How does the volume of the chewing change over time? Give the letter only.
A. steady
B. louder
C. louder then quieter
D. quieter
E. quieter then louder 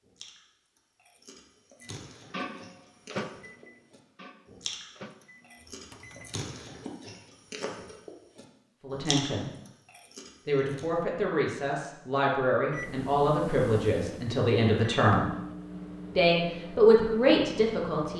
B.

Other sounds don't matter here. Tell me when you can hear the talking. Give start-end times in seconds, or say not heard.
8.8-9.5, 10.4-15.2, 16.1-18.1.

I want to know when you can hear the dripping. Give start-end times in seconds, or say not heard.
not heard.